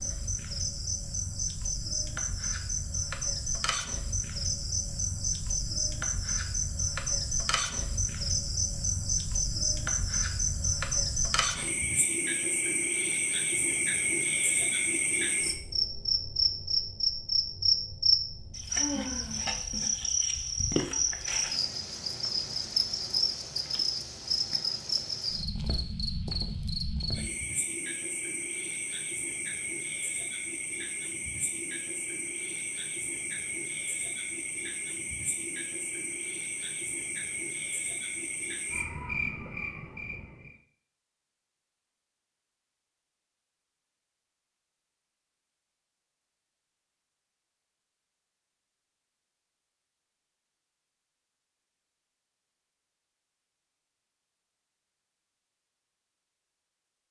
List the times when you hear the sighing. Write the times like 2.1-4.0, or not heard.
18.7-19.5.